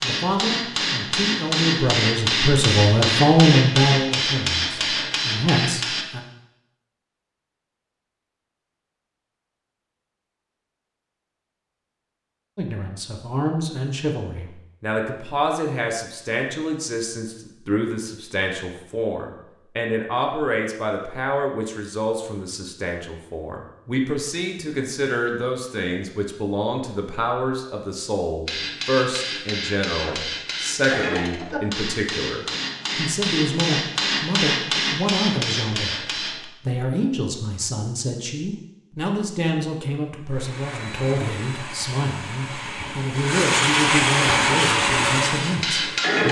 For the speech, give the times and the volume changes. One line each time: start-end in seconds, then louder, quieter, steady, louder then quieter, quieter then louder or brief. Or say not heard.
0.0-6.2 louder then quieter
12.6-36.0 steady
36.6-46.2 steady.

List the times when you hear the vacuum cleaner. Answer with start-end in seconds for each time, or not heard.
40.2-46.0.